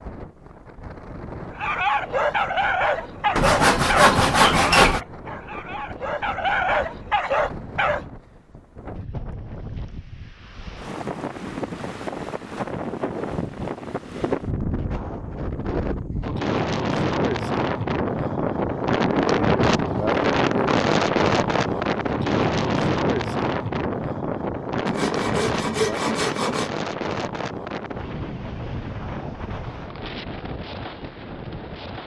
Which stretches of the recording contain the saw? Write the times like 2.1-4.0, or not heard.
3.4-5.0, 24.9-26.7.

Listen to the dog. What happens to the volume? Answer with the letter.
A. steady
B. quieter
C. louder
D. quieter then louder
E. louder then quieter
D.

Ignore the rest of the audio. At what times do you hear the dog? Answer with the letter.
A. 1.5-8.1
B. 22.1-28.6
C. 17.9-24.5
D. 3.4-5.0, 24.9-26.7
A.